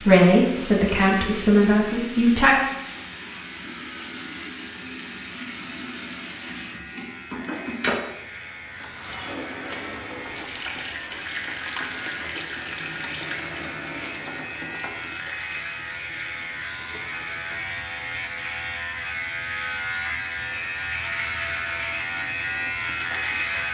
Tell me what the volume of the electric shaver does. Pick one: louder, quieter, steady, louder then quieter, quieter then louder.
louder.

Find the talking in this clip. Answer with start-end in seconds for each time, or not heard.
0.0-2.5.